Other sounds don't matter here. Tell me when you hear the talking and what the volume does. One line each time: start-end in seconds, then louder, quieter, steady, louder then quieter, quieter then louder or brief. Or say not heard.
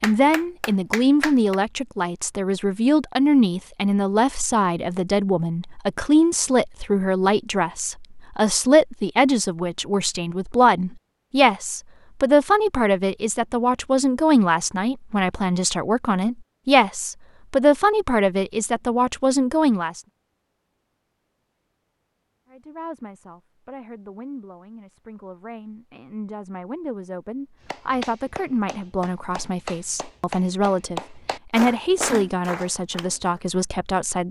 0.0-20.0 steady
22.5-34.2 louder.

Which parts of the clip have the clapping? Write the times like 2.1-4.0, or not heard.
0.0-1.6, 27.6-33.4.